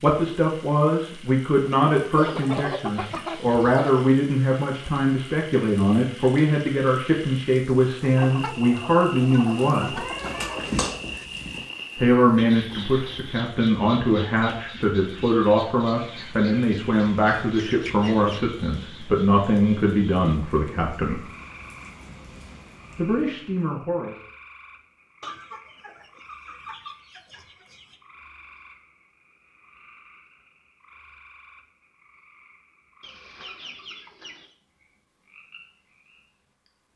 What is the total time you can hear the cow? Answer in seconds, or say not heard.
not heard.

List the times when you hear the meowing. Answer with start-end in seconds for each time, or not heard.
9.9-11.7.